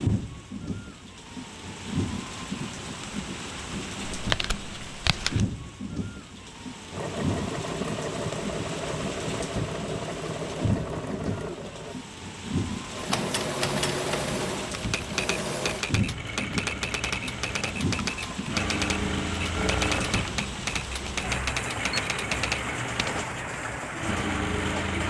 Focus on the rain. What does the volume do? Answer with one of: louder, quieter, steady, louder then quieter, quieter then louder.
steady.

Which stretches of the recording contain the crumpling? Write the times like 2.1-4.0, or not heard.
4.1-5.5.